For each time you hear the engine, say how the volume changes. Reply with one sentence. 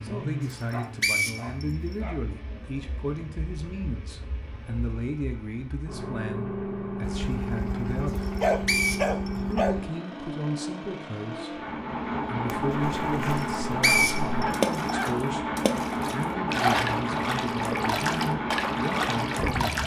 You can hear the engine from 0.0 to 19.8 s, getting louder.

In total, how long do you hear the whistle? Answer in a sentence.
The whistle can be heard for 4 seconds in total.